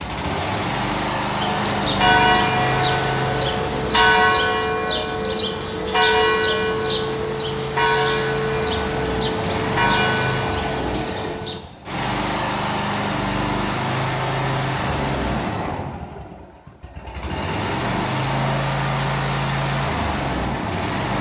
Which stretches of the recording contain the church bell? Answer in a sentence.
The church bell can be heard from 1.4 to 11.6 s.